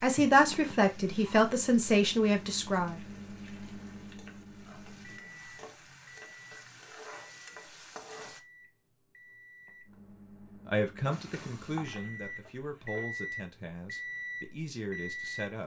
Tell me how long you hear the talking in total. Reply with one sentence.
The talking can be heard for 8 seconds in total.